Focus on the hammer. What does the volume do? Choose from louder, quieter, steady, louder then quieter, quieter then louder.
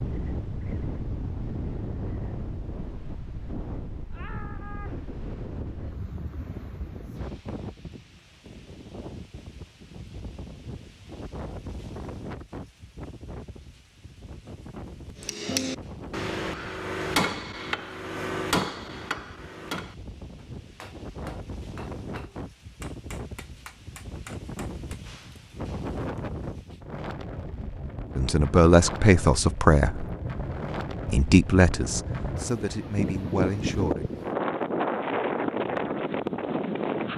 quieter.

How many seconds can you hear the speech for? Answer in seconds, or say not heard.
5 s.